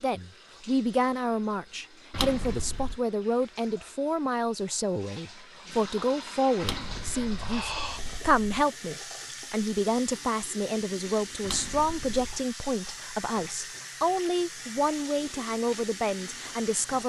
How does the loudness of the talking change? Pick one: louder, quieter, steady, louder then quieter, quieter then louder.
steady.